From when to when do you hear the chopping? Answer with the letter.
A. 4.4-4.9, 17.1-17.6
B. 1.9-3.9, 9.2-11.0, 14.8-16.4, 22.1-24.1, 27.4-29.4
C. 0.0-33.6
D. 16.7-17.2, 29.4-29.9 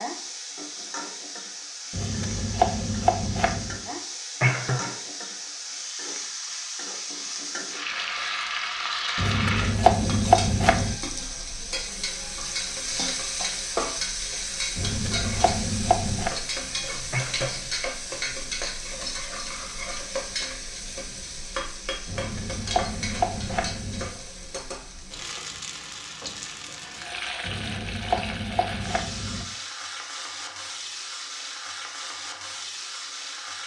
B.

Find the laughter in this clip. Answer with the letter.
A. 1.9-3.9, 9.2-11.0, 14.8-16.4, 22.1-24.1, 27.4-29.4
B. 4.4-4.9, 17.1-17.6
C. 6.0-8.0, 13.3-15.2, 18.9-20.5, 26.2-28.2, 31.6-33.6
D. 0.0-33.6
B.